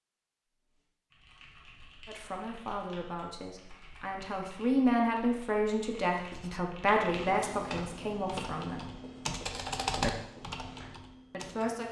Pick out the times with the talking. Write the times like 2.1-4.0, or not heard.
2.0-8.9, 11.3-11.8.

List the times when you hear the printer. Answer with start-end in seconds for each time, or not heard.
not heard.